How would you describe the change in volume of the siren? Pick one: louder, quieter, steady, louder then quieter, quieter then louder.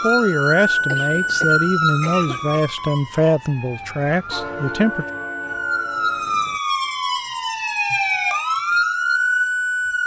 quieter then louder.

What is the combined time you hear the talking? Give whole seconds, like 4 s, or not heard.
5 s.